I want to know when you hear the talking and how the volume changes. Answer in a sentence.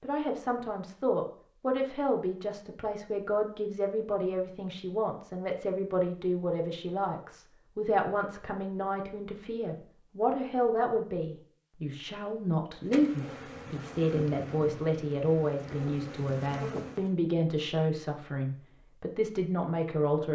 The talking can be heard from 0.0 to 20.2 s, at a steady volume.